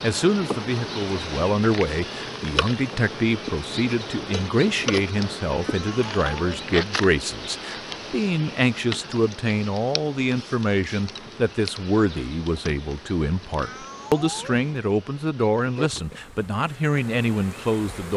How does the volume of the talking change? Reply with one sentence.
The volume of the talking stays about the same.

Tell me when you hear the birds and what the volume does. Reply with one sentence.
The birds can't be heard in this clip.